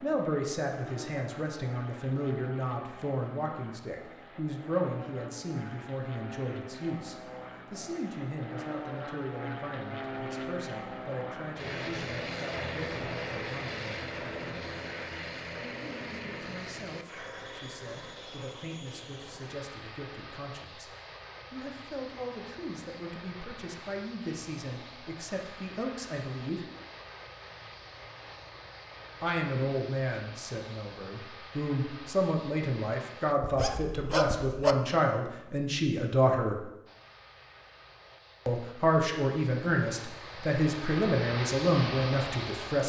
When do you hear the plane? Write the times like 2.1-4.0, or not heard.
0.0-33.4, 36.9-42.8.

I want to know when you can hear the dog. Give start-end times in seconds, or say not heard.
33.4-34.8.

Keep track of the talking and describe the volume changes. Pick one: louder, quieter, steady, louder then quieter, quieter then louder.
quieter then louder.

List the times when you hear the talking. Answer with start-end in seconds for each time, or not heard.
0.0-14.1, 15.6-26.6, 29.2-36.6, 38.5-42.8.